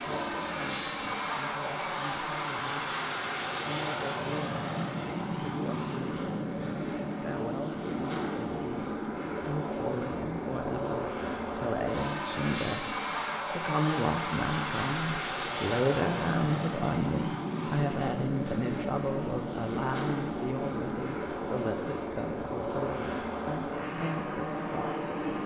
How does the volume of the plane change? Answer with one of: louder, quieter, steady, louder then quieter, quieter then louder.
steady.